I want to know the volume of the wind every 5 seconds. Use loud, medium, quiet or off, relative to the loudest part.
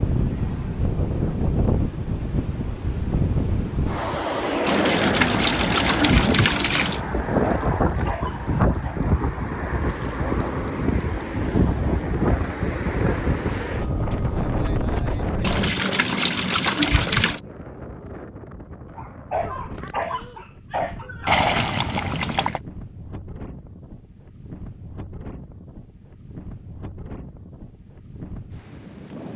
loud, loud, loud, medium, quiet, quiet.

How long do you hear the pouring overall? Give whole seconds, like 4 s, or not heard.
6 s.